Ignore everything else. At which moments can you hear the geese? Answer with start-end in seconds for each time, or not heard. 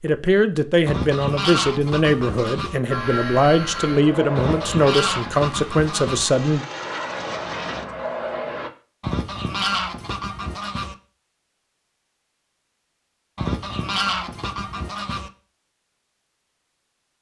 0.8-2.8, 4.3-6.3, 9.0-10.9, 13.3-15.3.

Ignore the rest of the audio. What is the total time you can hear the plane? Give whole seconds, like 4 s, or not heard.
6 s.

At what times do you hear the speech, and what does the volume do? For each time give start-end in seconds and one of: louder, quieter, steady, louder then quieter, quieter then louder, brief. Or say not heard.
0.0-6.7 steady.